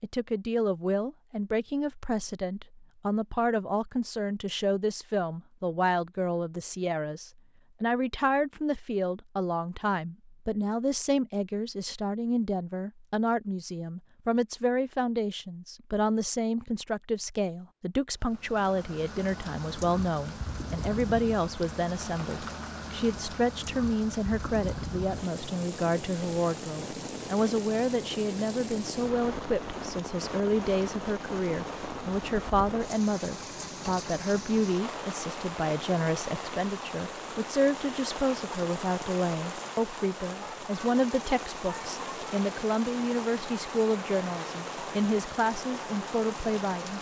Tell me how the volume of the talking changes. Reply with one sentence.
The loudness of the talking stays about the same.